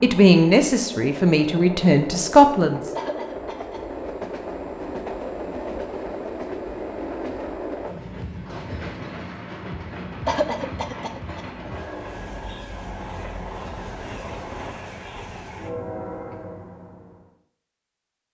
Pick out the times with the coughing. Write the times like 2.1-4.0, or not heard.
3.0-3.9, 10.2-11.7.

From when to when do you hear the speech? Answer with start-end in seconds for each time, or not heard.
0.0-2.8.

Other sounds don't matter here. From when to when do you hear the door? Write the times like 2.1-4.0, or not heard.
not heard.